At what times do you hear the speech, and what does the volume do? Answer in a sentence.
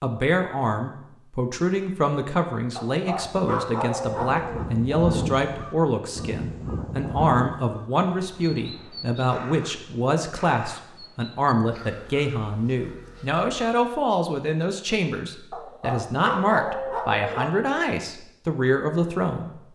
You can hear the speech from 0.0 to 19.6 s, at a steady volume.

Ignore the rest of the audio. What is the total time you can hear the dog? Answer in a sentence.
The dog can be heard for 4 seconds in total.